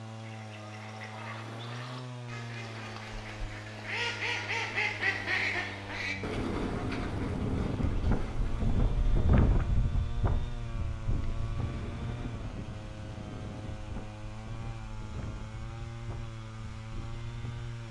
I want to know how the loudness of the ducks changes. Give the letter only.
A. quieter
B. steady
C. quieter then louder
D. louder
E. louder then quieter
E.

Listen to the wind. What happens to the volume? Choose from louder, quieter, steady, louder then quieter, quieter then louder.
quieter.